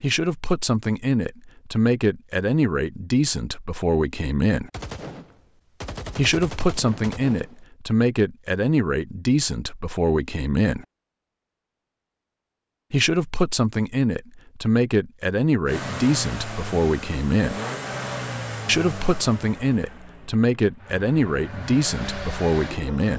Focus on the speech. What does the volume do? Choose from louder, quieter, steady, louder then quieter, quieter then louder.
steady.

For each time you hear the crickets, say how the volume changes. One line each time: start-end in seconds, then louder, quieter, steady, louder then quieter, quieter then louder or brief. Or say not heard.
not heard.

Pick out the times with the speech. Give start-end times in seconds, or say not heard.
0.0-4.7, 6.2-10.8, 12.9-17.6, 18.6-23.1.